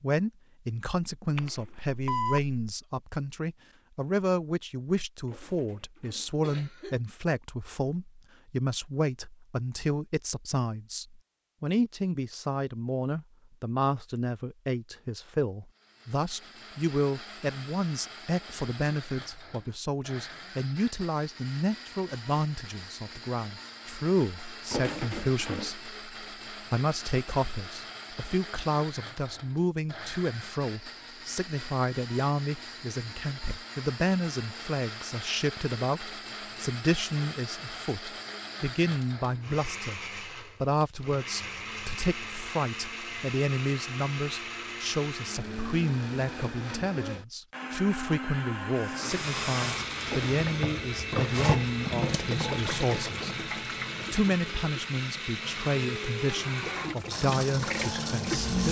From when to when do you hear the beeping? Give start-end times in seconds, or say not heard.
1.4-2.8.